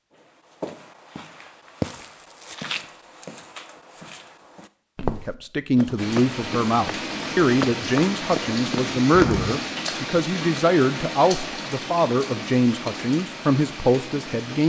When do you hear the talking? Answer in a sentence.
The talking can be heard from 5.0 to 14.6 s.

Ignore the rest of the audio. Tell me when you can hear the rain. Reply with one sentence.
You can hear the rain from 6.0 to 14.6 s.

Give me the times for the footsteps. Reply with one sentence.
You can hear the footsteps from 0.1 to 9.6 s.